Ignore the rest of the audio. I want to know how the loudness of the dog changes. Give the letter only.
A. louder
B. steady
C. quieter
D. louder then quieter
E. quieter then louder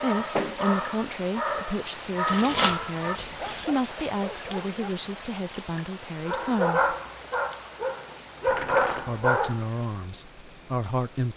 E.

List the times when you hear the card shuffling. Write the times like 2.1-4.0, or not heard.
2.2-3.7, 7.7-9.2.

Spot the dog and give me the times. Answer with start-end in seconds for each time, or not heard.
0.0-5.0, 6.2-9.6.